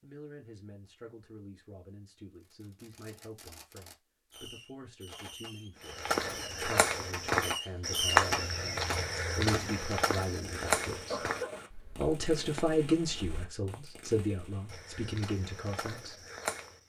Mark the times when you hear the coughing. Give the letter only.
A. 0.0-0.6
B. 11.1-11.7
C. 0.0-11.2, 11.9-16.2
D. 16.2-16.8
B.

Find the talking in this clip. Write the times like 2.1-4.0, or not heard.
0.0-11.2, 11.9-16.2.